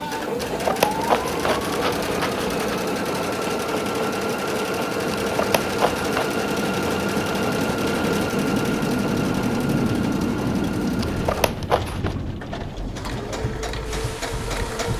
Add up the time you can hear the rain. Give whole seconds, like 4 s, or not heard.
15 s.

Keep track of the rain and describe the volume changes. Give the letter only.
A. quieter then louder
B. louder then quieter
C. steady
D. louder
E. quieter
B.